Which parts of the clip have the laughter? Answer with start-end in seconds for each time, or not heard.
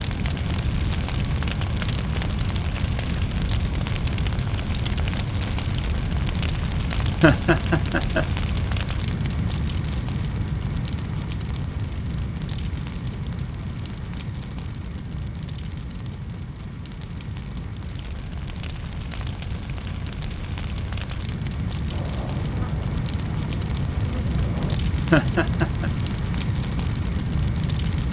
7.2-8.2, 25.1-25.9.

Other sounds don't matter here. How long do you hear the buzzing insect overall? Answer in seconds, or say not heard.
3 s.